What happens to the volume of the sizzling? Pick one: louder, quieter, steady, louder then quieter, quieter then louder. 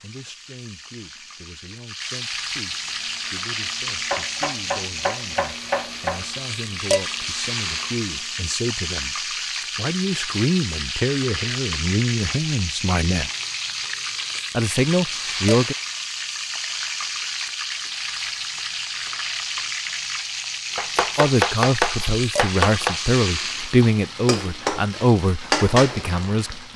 steady.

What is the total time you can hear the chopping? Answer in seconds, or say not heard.
4 s.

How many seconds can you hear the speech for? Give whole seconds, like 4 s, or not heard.
20 s.